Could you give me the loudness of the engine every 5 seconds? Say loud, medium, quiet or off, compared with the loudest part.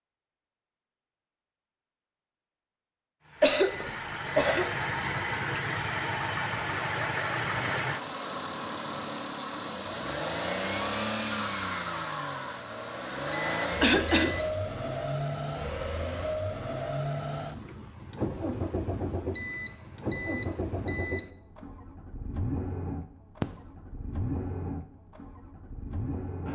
loud, loud, loud, loud, medium, medium.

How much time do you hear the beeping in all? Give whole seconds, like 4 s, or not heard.
5 s.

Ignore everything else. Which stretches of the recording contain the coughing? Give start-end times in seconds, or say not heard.
3.4-4.8, 13.3-14.3.